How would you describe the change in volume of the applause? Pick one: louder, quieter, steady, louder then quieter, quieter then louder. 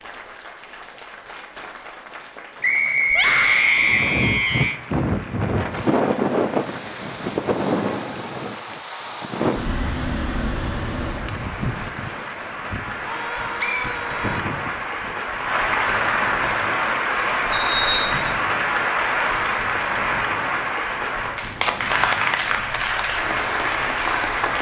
louder.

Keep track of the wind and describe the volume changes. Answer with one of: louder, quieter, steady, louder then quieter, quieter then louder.
quieter.